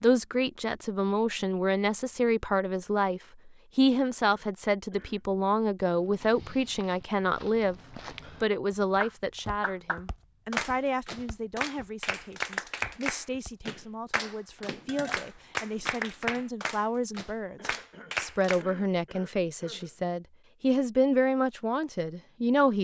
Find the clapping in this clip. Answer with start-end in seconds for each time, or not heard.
9.0-18.6.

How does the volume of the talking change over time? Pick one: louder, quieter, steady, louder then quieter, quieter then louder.
quieter then louder.